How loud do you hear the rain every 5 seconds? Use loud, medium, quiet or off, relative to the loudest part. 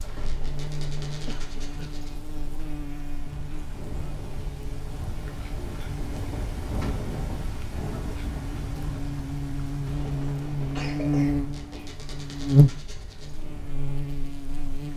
medium, loud, medium.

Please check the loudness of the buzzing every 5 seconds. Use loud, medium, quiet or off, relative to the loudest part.
quiet, medium, loud.